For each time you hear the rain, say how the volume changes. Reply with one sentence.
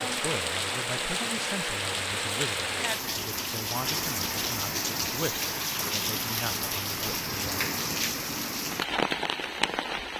The rain can be heard from 0.0 to 10.1 s, at a steady volume.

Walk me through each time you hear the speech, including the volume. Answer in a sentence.
You can hear the speech from 0.1 to 7.6 s, at a steady volume.